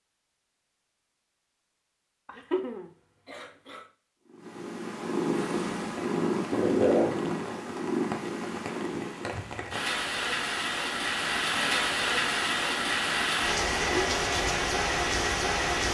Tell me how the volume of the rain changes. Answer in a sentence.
The volume of the rain goes up.